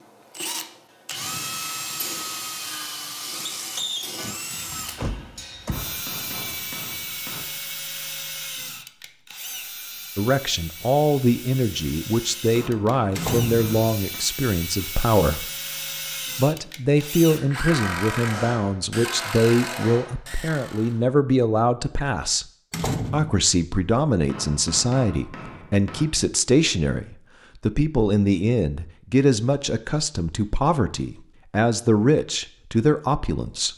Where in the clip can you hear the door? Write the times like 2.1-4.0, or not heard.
4.7-6.0, 13.2-13.7, 22.7-23.4.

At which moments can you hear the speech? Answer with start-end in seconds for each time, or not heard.
10.2-15.4, 16.4-22.4, 23.1-33.7.